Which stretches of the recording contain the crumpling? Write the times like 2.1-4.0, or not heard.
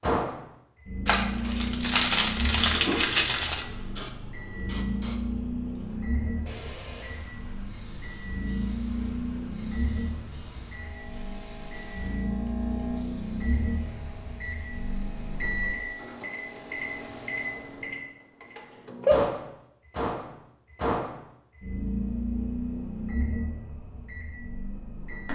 1.1-3.6.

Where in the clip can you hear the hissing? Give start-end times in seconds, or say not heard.
2.5-17.8.